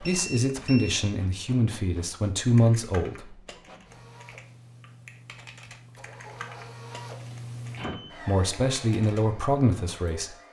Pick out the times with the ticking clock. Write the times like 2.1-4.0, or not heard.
not heard.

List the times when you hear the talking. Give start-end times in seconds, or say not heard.
0.0-3.4, 8.2-10.3.